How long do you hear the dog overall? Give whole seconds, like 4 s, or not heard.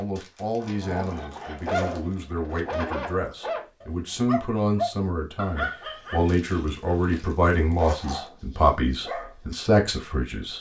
9 s.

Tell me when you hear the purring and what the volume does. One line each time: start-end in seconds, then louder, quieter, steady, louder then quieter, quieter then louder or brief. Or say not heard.
not heard.